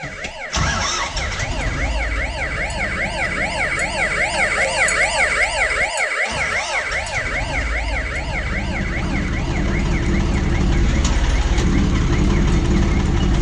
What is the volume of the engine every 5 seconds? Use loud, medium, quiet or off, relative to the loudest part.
medium, medium, loud.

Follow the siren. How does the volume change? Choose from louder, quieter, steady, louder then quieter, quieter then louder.
louder then quieter.